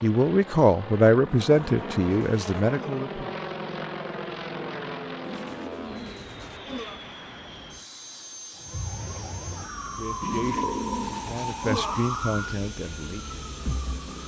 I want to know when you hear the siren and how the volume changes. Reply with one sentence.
You can hear the siren from 8.6 to 14.2 s, getting louder then quieter.